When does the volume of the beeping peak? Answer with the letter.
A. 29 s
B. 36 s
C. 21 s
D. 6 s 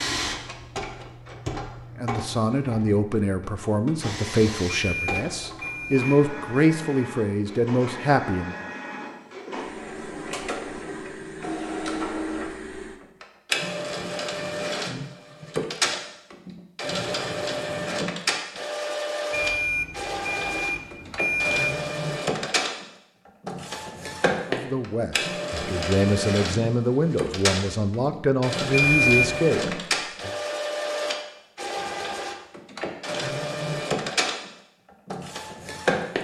A.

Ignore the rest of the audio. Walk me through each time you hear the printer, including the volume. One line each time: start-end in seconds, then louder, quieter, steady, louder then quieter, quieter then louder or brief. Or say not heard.
0.0-36.1 louder.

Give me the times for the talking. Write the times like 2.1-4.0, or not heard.
1.9-8.6, 24.5-30.4.